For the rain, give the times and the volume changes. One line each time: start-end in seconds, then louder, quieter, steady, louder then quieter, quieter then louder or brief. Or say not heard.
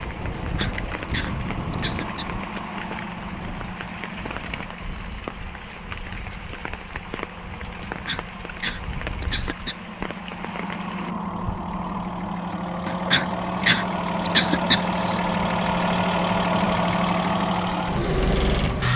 0.0-11.2 steady.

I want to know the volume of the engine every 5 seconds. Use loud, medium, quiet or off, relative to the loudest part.
medium, quiet, medium, loud.